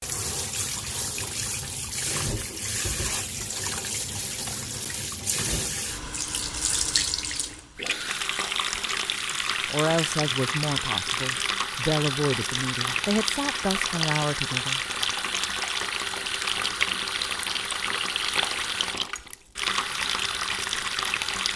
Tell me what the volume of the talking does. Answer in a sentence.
The volume of the talking goes down, then up.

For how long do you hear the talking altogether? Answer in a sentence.
The talking can be heard for 5 seconds in total.